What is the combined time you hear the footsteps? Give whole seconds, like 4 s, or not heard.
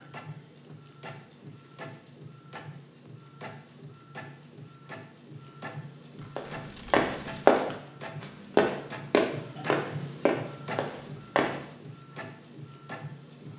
5 s.